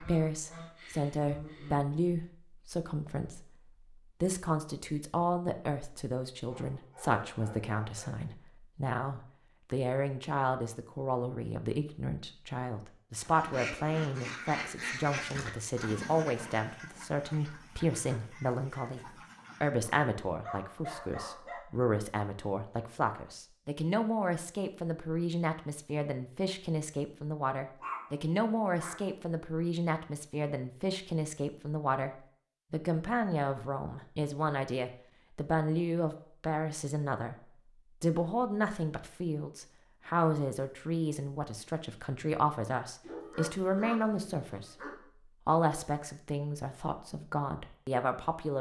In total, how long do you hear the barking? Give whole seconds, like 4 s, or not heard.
7 s.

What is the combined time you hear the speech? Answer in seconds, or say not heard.
47 s.